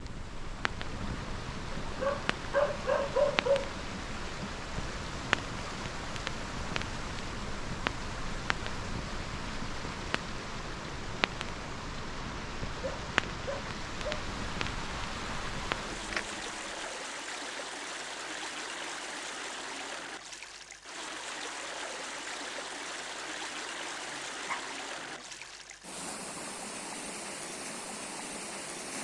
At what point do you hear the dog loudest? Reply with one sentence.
The volume of the dog peaks at 3 seconds.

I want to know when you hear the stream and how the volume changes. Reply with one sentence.
You can hear the stream from 0.0 to 28.9 s, at a steady volume.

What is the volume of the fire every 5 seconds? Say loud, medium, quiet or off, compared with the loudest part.
medium, loud, loud, loud, off, off.